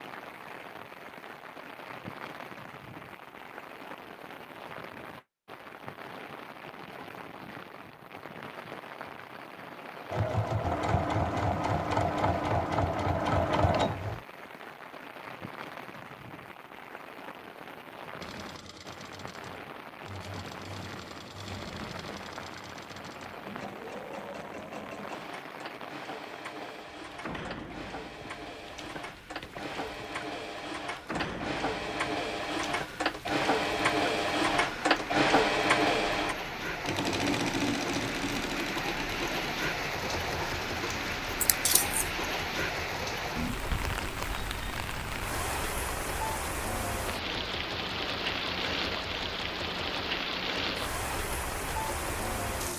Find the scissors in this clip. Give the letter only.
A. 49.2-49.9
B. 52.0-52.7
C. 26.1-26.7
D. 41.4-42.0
D.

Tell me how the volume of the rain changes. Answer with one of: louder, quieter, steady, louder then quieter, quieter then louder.
louder.